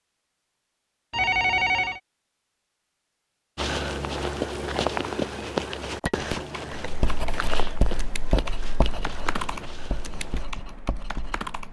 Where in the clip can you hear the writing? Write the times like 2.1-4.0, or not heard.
6.8-11.5.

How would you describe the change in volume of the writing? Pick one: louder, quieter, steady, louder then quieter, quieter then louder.
quieter.